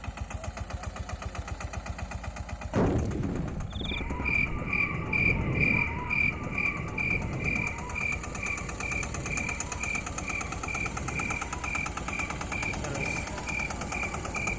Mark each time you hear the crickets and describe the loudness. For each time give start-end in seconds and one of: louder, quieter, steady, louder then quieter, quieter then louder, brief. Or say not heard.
3.7-14.5 quieter.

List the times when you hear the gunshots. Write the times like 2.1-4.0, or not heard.
2.7-4.3.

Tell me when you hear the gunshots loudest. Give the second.
3 s.